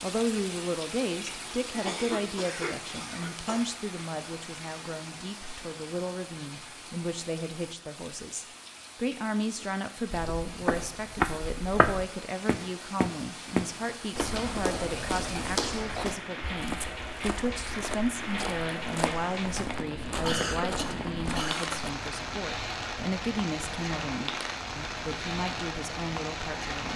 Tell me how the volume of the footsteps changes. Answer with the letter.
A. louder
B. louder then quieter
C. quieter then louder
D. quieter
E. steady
D.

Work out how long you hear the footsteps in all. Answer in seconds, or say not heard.
12 s.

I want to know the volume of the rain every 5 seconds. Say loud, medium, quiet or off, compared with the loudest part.
medium, medium, medium, loud, loud, loud.